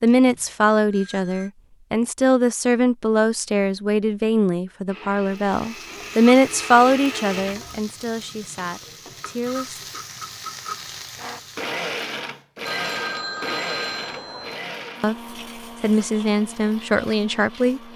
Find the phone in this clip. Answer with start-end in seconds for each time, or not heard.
0.1-1.5, 12.7-14.6.